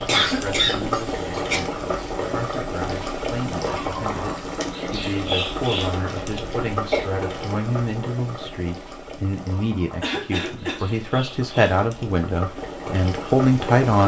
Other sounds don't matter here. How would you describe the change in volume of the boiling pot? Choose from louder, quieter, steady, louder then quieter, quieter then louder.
quieter then louder.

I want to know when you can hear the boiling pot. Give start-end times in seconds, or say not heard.
0.0-14.0.